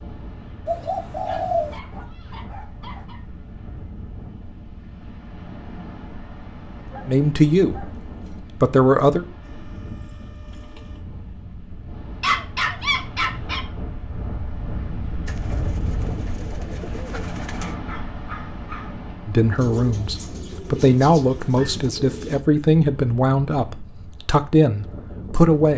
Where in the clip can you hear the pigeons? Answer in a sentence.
You can hear the pigeons from 0.7 to 1.8 s, from 9.4 to 11.1 s, from 15.2 to 17.8 s and from 19.6 to 22.4 s.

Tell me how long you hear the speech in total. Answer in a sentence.
The speech can be heard for 8 seconds in total.